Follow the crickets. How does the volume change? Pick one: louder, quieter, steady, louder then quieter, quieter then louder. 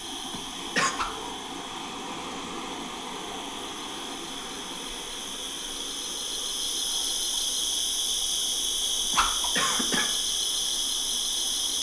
louder.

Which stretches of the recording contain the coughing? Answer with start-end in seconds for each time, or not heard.
0.2-0.9, 9.1-10.1.